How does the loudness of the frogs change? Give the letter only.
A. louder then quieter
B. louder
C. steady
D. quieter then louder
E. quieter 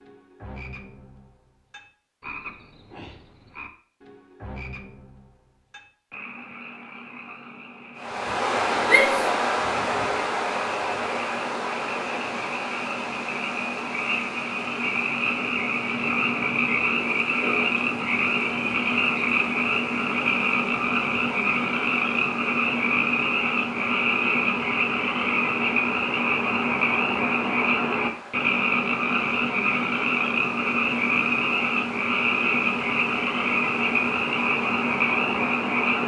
B.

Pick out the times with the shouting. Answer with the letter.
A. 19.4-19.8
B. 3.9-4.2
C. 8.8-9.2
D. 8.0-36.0
C.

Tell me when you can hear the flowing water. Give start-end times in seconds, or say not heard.
8.0-36.0.